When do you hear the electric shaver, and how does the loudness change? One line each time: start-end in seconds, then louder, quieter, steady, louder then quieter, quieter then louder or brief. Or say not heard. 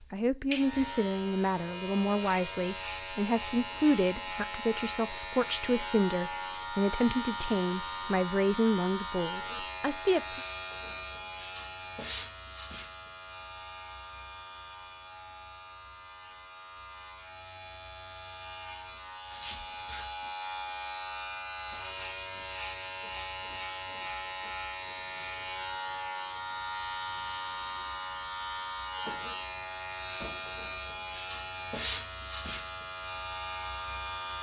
0.0-34.3 quieter then louder.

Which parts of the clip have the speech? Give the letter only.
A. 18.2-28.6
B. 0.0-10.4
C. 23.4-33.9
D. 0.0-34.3
B.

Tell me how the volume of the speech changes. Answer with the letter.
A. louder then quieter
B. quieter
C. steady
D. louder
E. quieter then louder
C.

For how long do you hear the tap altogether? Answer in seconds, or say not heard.
not heard.